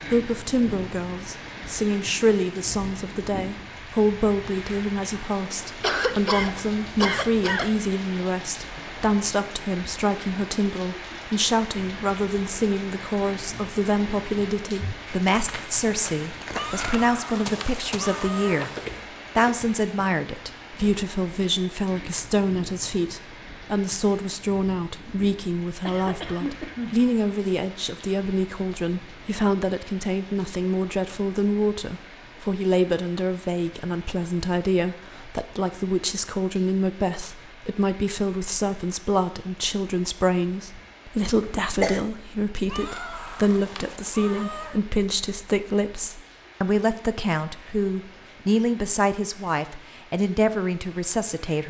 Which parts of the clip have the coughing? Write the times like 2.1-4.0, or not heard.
5.8-7.8, 25.9-26.9, 41.4-42.0.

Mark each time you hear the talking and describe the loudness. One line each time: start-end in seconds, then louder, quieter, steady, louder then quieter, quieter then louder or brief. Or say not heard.
0.1-18.7 steady
19.4-51.6 steady.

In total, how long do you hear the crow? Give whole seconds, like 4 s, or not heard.
not heard.